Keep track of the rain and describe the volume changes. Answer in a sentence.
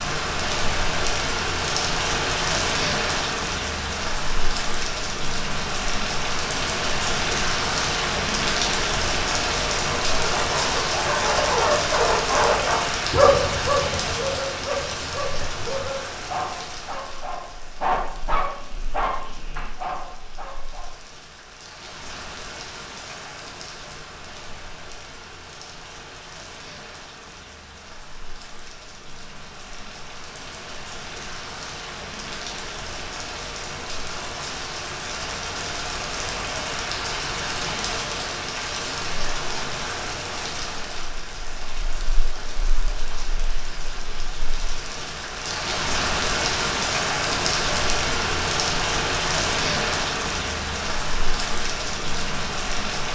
The volume of the rain goes down, then up.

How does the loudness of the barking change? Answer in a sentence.
The loudness of the barking goes down.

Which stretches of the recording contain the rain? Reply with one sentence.
The rain can be heard from 0.0 to 53.1 s.